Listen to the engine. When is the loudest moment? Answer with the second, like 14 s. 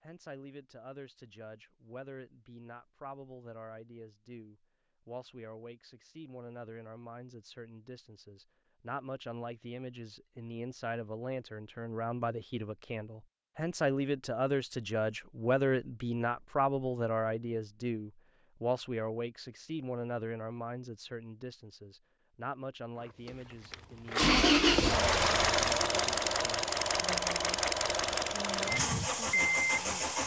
25 s.